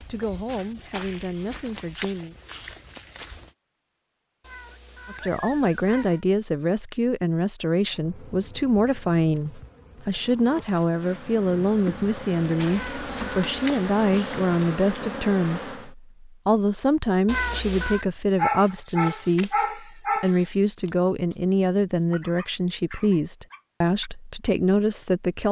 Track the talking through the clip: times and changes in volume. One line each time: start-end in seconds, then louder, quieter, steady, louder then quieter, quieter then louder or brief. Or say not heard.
0.1-2.4 brief
5.1-25.4 steady.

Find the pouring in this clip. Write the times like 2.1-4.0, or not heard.
not heard.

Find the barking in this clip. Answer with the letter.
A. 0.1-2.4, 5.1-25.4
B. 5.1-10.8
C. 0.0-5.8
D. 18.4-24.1
D.